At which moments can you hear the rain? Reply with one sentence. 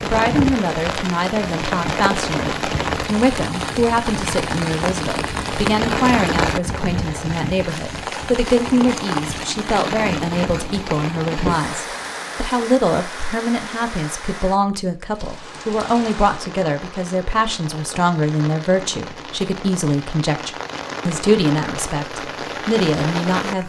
The rain can be heard from 0.0 to 23.6 s.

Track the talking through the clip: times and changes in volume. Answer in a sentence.
You can hear the talking from 0.0 to 23.6 s, at a steady volume.